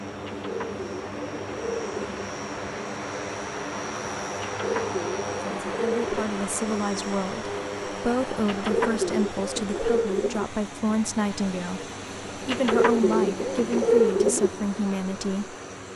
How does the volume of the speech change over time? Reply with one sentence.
The loudness of the speech stays about the same.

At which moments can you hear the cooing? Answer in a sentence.
You can hear the cooing from 0.2 to 2.2 s, from 4.4 to 6.3 s, from 8.4 to 10.4 s and from 12.4 to 14.5 s.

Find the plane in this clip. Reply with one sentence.
The plane can be heard from 0.0 to 15.9 s.